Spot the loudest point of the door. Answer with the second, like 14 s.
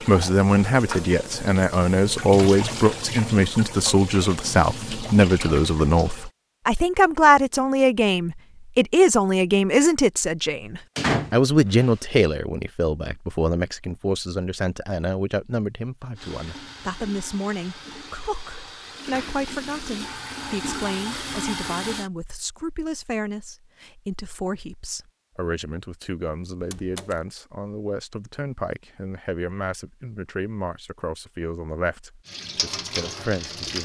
11 s.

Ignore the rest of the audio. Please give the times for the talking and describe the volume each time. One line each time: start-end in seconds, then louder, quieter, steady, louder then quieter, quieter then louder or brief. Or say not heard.
0.1-33.8 quieter.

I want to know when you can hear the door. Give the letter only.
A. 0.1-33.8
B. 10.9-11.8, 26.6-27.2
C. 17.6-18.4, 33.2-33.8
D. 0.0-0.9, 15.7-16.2
B.